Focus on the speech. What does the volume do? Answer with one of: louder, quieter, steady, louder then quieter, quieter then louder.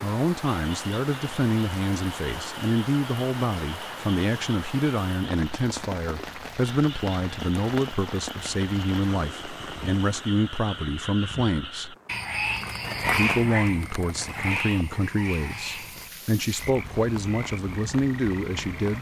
steady.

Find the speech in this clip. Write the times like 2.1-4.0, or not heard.
0.0-11.9, 13.2-18.9.